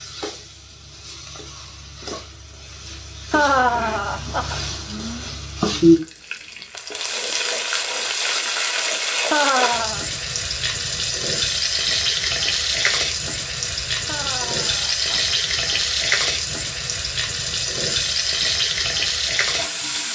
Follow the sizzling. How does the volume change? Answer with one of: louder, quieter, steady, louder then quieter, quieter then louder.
louder.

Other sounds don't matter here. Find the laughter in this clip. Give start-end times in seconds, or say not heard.
3.3-4.6, 9.2-10.1, 14.1-15.2.